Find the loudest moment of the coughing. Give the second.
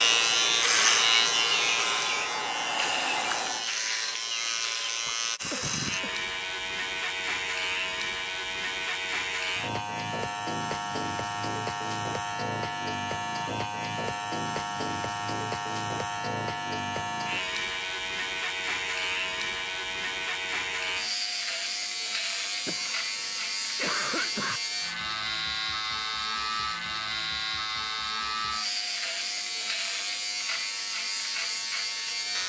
24 s.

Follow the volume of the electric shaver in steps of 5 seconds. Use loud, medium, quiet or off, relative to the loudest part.
loud, medium, medium, medium, medium, medium, medium.